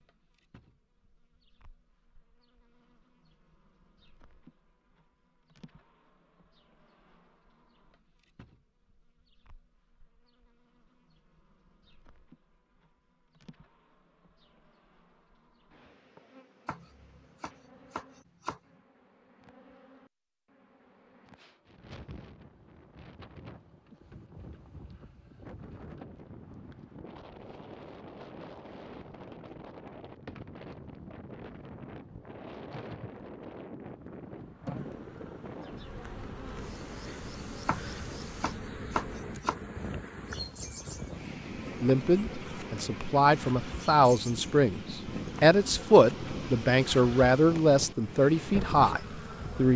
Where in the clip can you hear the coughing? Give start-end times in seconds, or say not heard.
not heard.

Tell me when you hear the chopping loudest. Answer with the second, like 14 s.
39 s.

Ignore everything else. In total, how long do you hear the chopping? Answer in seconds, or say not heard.
4 s.